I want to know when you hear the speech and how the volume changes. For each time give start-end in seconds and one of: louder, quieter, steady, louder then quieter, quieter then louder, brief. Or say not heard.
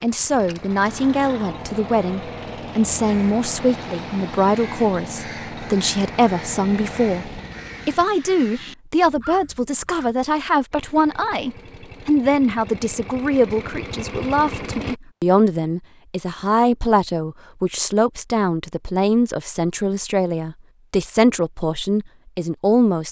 0.0-23.0 steady.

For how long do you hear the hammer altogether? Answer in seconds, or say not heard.
not heard.